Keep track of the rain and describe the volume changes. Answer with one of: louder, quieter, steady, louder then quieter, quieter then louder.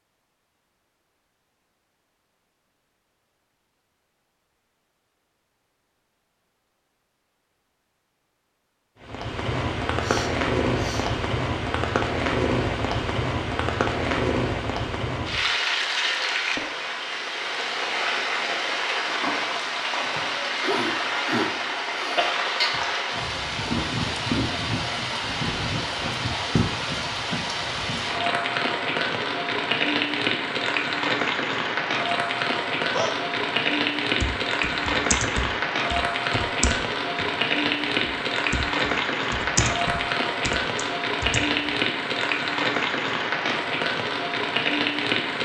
steady.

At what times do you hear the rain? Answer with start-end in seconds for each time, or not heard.
9.0-45.3.